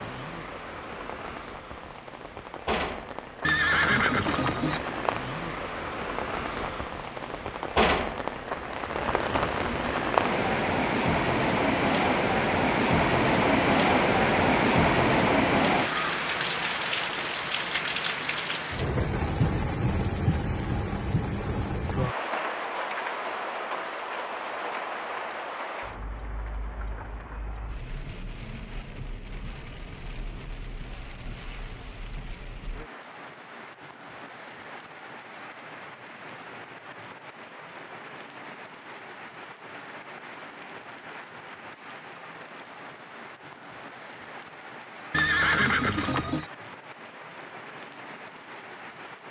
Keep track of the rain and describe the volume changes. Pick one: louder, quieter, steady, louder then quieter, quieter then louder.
louder then quieter.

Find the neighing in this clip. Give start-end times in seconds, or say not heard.
3.4-4.8, 45.1-46.5.